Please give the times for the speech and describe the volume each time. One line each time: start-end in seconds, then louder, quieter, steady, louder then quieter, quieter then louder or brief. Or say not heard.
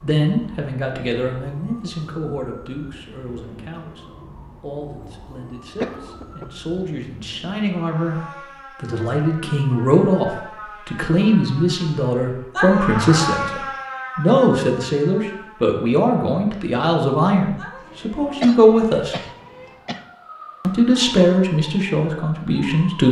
0.0-19.1 louder
20.6-23.0 brief.